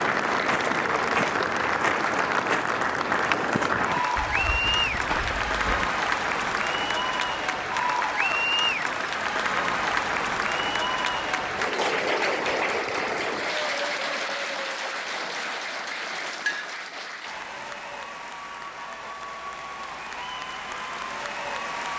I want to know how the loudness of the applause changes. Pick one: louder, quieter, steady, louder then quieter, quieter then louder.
quieter.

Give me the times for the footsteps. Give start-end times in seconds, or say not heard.
0.0-5.9.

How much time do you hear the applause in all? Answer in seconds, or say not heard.
22 s.